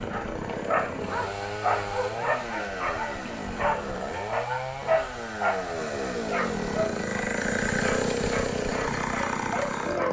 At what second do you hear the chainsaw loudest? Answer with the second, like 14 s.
8 s.